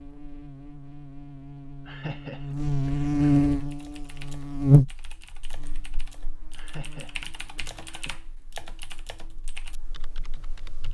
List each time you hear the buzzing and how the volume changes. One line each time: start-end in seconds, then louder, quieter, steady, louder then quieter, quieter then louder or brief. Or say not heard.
0.0-10.9 louder then quieter.